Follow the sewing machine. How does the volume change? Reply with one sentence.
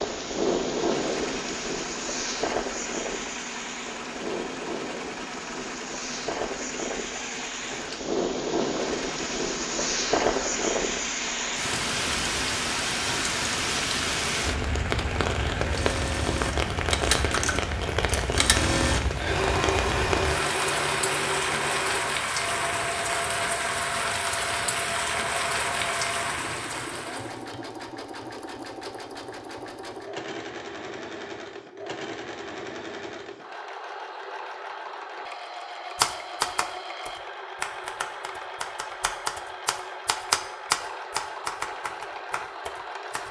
The volume of the sewing machine goes up, then down.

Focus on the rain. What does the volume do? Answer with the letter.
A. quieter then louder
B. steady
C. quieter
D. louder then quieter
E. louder
B.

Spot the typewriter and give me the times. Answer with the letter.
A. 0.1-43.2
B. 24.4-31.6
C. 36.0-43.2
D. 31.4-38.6
C.